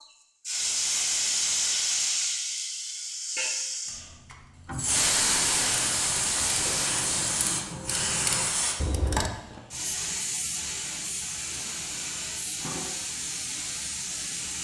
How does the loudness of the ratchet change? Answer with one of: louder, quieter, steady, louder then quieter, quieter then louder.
louder.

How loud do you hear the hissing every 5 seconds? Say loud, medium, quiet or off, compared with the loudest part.
loud, loud, medium.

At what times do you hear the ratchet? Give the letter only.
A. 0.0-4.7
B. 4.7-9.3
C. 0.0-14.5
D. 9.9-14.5
B.